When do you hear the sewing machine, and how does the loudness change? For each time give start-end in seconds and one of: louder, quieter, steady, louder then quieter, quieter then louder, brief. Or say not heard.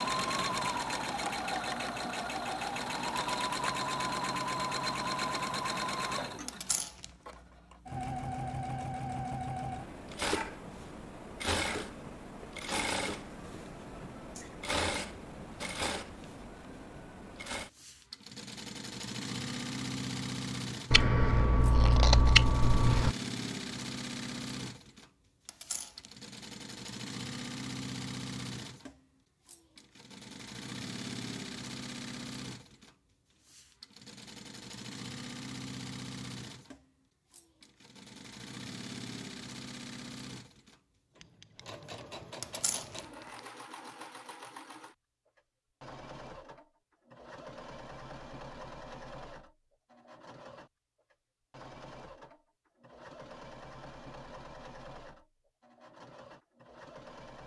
0.0-57.4 quieter.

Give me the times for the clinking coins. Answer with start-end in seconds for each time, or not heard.
6.5-7.3, 25.4-26.1, 42.4-43.0.